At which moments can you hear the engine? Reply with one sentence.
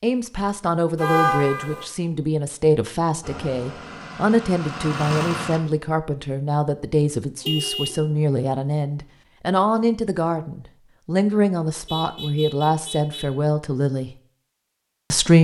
You can hear the engine from 3.2 to 5.6 s.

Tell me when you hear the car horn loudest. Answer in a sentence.
The loudest moment of the car horn is at 1 second.